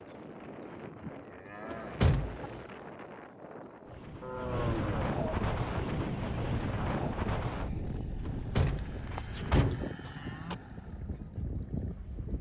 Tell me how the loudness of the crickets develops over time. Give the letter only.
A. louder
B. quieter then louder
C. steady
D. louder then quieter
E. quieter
C.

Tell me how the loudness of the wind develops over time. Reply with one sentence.
The volume of the wind goes up, then down.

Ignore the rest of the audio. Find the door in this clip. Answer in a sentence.
The door can be heard from 1.7 to 2.6 s and from 8.2 to 9.9 s.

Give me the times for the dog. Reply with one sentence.
You can't hear the dog here.